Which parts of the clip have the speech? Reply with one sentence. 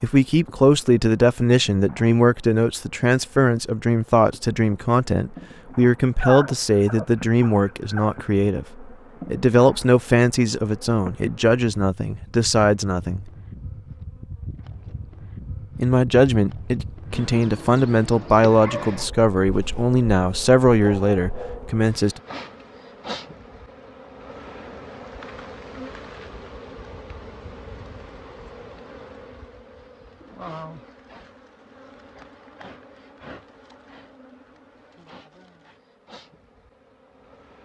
The speech can be heard from 0.0 to 13.2 s and from 15.8 to 22.2 s.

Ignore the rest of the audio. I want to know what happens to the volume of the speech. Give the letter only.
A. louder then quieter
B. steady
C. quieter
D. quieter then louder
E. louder
B.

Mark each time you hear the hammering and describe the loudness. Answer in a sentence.
The hammering can't be heard in this clip.